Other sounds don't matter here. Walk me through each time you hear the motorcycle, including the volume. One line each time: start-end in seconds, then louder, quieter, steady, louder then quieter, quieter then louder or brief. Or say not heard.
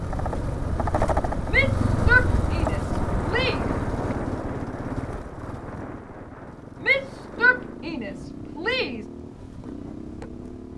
0.0-10.7 quieter.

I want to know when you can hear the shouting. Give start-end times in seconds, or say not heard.
1.5-3.6, 6.8-9.1.